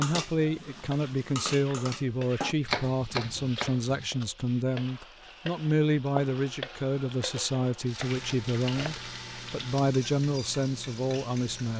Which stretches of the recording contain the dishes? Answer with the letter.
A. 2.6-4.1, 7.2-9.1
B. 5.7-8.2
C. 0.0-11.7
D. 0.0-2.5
D.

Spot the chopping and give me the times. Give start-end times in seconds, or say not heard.
2.6-4.1, 7.2-9.1.